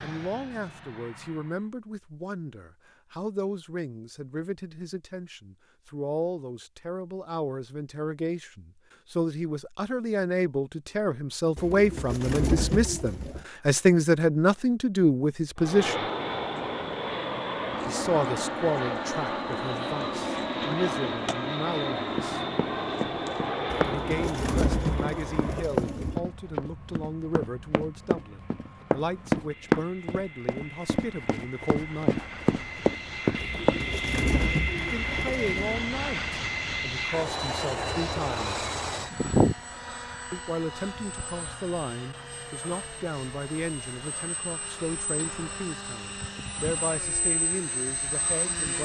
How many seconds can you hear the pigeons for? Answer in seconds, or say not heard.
7 s.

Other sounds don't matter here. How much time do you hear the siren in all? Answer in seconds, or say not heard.
not heard.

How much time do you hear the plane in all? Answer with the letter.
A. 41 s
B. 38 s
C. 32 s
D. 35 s
D.